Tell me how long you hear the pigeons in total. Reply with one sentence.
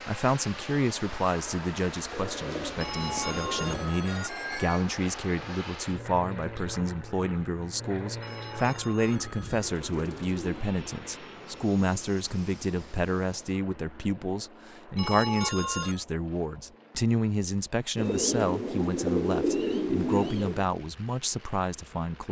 The pigeons can be heard for 6 seconds in total.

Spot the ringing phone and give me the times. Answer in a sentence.
The ringing phone can be heard from 2.8 to 4.8 s, from 8.2 to 9.7 s and from 14.9 to 16.1 s.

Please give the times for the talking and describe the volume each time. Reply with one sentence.
You can hear the talking from 0.1 to 22.2 s, at a steady volume.